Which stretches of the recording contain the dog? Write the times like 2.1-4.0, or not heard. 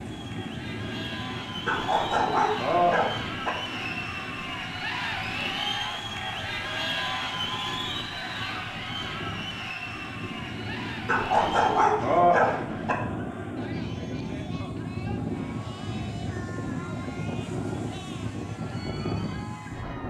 1.6-3.5, 11.1-12.9.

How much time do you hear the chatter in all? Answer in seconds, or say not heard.
20 s.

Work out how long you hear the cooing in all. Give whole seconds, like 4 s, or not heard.
not heard.